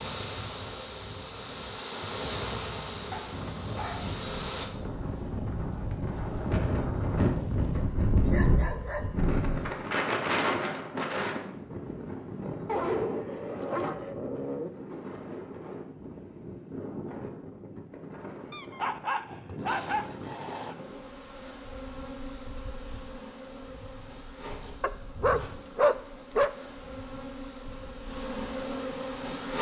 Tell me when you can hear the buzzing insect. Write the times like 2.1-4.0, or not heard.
0.0-4.7, 19.6-29.5.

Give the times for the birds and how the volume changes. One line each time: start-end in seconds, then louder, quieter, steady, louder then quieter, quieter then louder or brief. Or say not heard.
not heard.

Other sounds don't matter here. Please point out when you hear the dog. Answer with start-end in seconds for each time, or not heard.
3.1-4.2, 7.8-9.2, 12.7-14.7, 18.5-20.9, 24.8-26.5.